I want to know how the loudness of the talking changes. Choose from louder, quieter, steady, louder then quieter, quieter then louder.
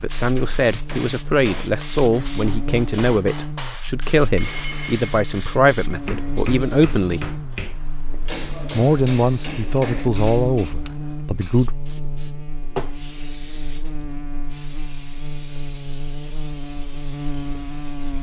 steady.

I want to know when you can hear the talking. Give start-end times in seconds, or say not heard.
0.0-7.3, 8.7-11.7.